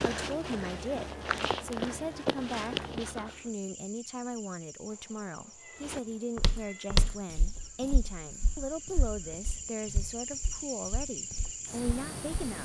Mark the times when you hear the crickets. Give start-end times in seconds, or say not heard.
3.2-12.6.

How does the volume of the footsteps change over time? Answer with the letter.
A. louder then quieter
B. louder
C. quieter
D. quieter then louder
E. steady
D.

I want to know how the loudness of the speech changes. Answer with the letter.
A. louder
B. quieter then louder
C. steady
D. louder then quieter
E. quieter
C.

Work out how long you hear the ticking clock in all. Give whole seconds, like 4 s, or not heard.
not heard.